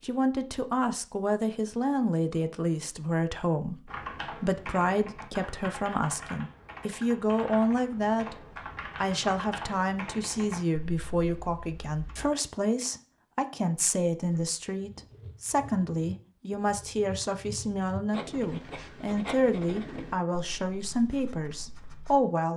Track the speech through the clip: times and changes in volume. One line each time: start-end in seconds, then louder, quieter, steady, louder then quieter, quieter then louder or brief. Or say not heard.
0.0-22.5 steady.